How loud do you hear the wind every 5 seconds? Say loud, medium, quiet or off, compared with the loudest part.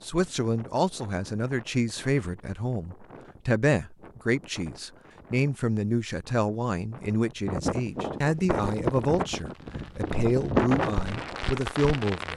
quiet, medium, loud.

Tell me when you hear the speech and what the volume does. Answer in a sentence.
The speech can be heard from 0.0 to 12.3 s, at a steady volume.